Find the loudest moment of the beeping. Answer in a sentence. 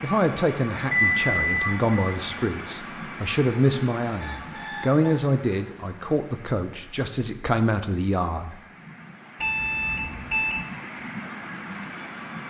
The loudest moment of the beeping is at 1 second.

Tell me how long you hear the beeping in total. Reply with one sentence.
The beeping can be heard for 4 seconds in total.